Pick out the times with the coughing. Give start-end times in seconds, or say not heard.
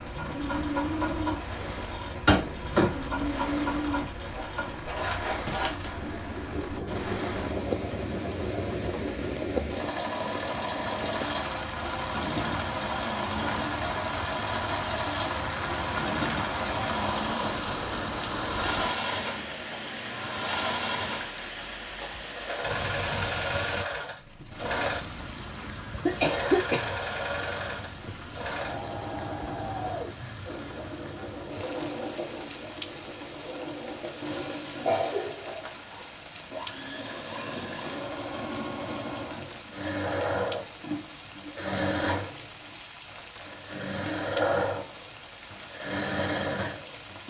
2.2-2.9, 25.6-26.9, 34.8-36.0.